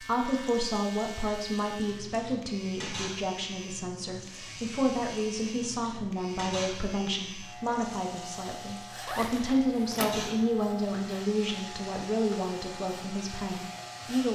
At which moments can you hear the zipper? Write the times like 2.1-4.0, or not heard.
9.1-10.2.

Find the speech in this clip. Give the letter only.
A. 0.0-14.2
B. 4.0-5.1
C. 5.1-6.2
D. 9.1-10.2
A.